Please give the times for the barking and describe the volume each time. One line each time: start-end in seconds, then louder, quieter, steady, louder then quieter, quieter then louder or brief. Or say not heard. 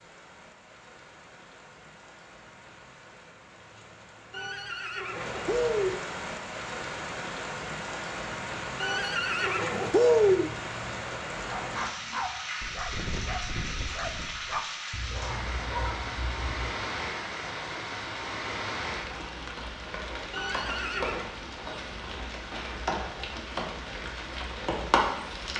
11.4-16.8 steady.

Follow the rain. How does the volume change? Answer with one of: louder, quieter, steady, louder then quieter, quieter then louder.
louder.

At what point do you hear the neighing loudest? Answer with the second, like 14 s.
10 s.